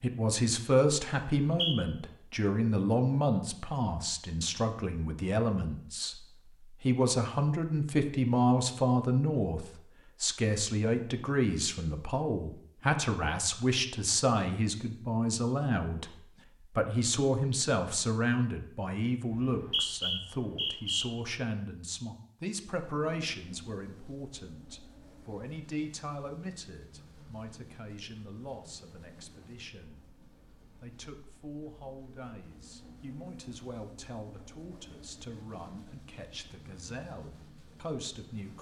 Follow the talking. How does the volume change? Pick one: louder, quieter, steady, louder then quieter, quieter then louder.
quieter.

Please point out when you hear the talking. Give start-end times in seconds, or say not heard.
0.0-6.2, 6.8-38.5.